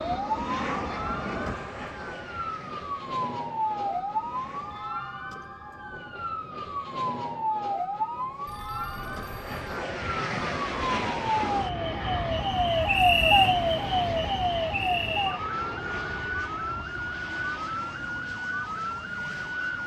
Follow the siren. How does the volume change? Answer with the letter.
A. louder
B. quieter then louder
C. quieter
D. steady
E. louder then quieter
E.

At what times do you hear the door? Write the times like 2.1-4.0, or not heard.
not heard.